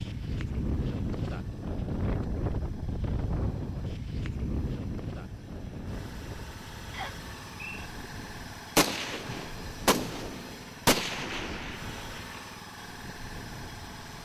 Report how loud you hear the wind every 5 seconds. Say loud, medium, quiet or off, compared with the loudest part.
loud, medium, quiet.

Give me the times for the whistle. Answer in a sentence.
The whistle can be heard from 6.9 to 7.9 s.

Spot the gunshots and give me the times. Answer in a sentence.
You can hear the gunshots from 8.8 to 12.4 s.